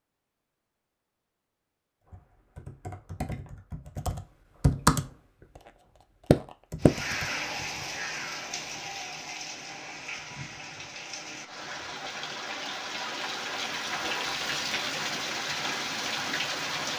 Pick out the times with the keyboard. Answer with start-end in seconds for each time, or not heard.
2.1-5.0, 6.3-7.2.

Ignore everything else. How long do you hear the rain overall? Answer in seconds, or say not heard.
10 s.